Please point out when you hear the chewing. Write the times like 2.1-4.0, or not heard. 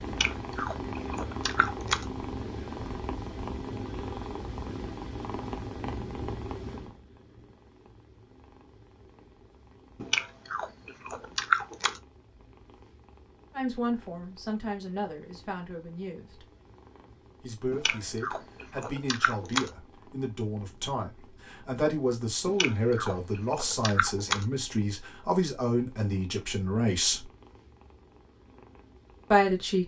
0.1-2.0, 10.0-12.0, 17.7-19.7, 22.4-24.4.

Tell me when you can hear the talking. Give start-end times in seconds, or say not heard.
13.5-16.4, 17.4-27.2, 29.3-29.8.